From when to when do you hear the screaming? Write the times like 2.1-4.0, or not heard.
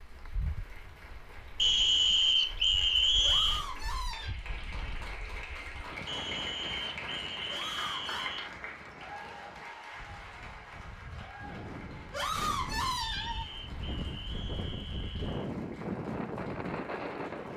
3.2-4.3, 7.5-8.3, 12.1-13.4.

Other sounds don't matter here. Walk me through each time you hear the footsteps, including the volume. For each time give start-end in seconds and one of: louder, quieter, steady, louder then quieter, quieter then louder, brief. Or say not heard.
not heard.